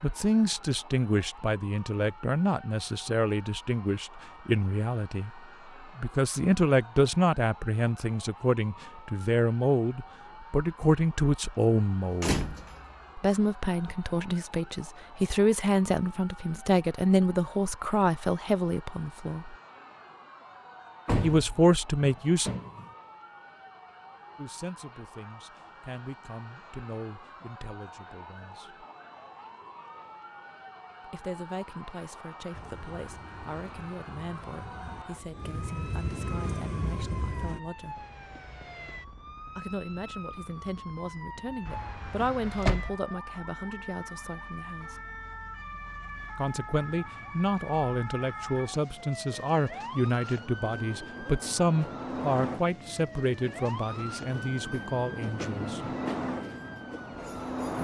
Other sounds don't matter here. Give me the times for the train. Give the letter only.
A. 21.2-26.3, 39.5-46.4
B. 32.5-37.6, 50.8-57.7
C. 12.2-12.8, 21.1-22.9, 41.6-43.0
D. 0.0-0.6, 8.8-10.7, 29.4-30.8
B.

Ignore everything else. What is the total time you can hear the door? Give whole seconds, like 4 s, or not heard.
4 s.